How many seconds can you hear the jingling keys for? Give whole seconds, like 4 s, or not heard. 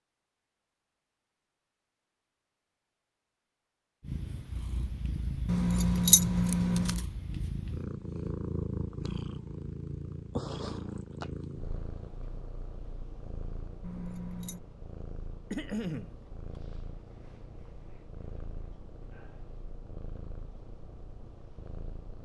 2 s.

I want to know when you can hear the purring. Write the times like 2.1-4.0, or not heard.
4.0-22.2.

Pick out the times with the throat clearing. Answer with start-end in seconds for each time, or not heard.
15.5-16.1.